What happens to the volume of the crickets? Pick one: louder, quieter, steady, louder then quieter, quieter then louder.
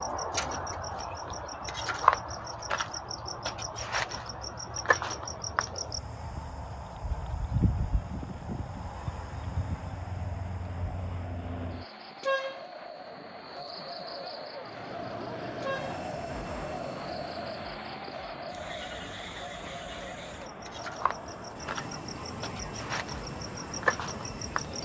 quieter then louder.